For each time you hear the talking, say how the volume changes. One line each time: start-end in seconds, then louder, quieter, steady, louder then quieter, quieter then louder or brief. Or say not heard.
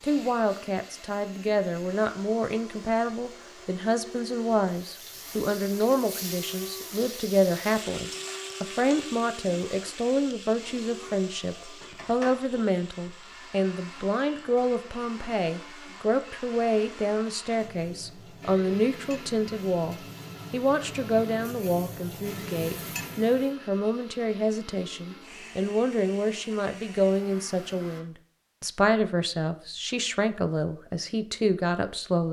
0.0-32.2 steady.